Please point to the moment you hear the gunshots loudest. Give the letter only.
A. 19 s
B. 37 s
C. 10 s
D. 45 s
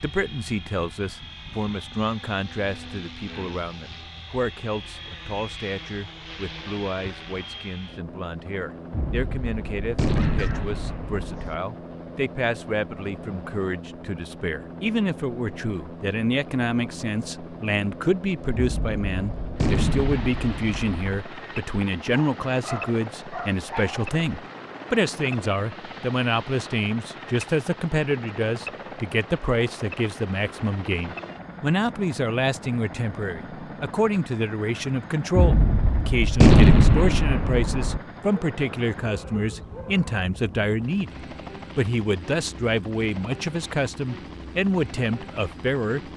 B.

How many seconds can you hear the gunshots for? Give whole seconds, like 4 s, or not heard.
8 s.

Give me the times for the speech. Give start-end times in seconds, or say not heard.
0.0-46.1.